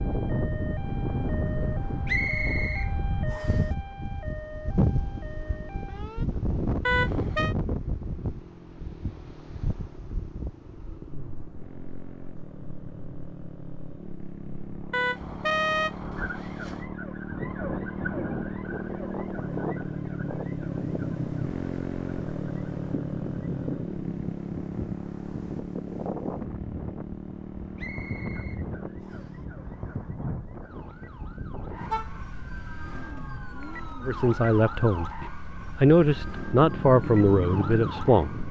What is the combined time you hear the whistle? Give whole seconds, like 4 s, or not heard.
3 s.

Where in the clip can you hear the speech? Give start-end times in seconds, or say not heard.
34.0-38.4.